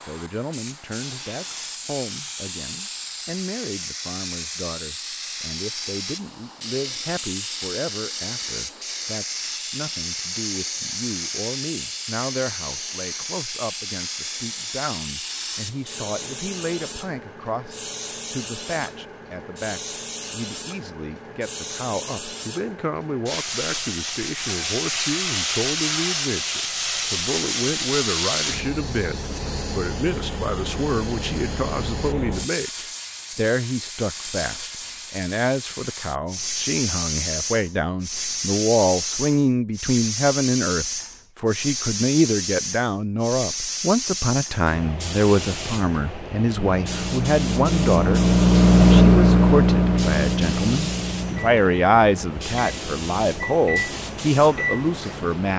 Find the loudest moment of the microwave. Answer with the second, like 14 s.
49 s.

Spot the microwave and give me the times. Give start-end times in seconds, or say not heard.
46.5-55.5.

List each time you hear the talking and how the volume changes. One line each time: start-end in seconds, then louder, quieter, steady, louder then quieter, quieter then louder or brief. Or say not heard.
0.0-55.5 louder.